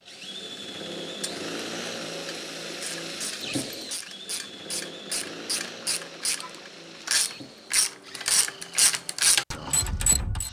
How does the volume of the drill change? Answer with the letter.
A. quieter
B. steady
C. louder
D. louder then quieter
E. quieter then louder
A.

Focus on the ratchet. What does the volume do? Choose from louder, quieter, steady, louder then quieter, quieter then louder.
louder.